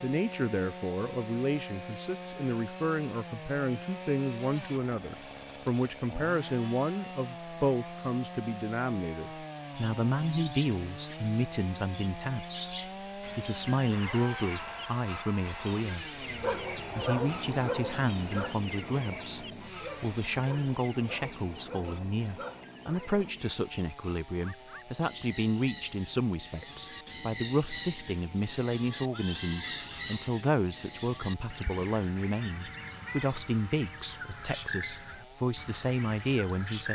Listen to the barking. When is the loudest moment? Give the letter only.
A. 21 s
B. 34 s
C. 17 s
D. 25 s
C.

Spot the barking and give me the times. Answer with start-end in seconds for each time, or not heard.
16.2-23.4.